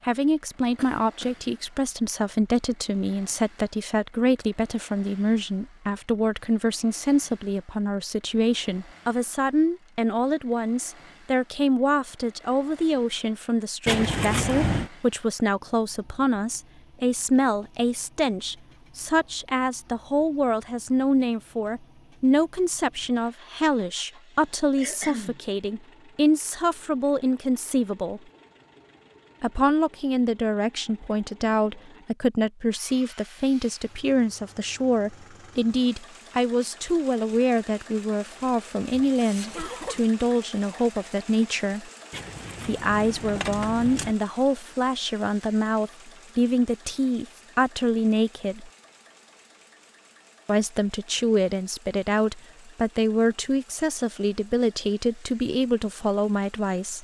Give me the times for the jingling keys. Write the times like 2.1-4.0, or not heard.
13.8-14.9, 42.1-44.1.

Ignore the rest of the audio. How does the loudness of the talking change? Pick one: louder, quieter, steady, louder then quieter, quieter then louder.
steady.